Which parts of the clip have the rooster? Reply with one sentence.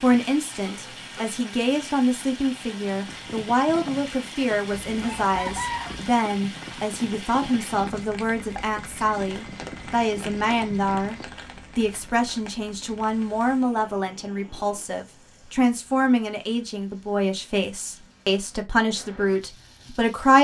You can hear the rooster from 4.9 to 6.0 s.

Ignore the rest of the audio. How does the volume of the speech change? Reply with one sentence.
The volume of the speech stays about the same.